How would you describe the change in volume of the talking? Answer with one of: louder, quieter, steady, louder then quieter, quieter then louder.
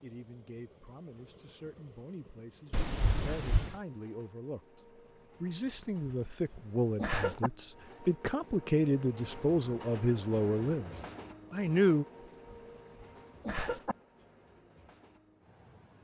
louder.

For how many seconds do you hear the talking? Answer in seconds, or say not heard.
12 s.